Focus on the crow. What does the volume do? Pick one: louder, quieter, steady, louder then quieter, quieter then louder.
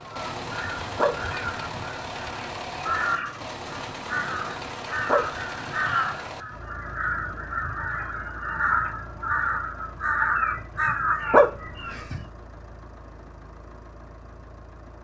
louder.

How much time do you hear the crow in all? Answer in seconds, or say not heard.
12 s.